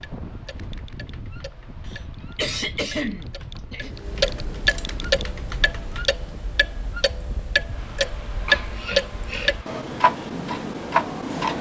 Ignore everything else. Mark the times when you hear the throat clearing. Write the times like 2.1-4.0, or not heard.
1.9-4.0, 8.4-9.6.